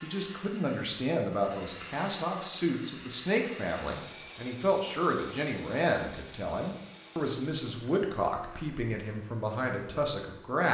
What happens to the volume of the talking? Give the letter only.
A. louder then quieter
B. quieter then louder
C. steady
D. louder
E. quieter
C.